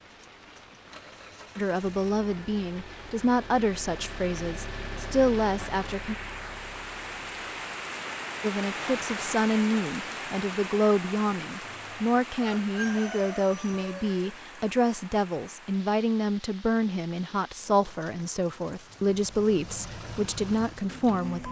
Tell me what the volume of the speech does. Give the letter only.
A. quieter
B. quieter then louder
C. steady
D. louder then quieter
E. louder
C.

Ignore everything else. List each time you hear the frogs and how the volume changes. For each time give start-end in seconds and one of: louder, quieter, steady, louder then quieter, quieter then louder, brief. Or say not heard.
not heard.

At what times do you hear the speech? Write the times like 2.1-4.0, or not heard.
1.6-6.2, 8.4-21.4.